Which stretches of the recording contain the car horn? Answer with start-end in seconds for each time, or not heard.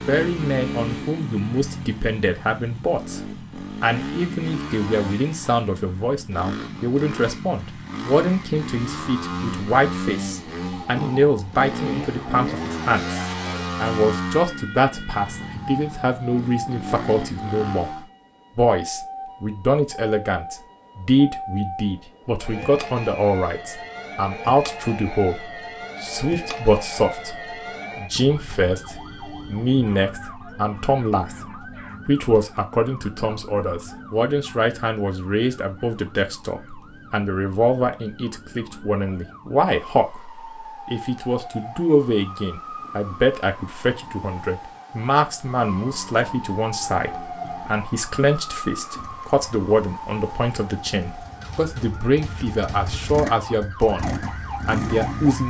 not heard.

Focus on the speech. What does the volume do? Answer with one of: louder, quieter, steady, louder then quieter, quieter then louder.
steady.